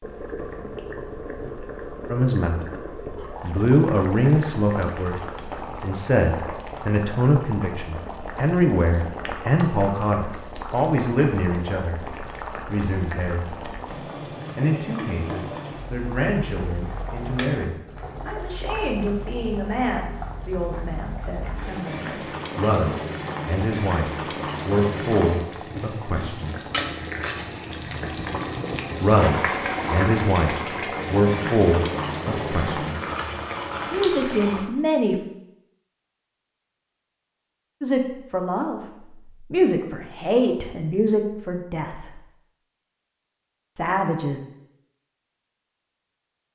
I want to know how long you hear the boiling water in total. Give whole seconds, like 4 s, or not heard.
35 s.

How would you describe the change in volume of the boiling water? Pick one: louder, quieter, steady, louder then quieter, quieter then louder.
louder.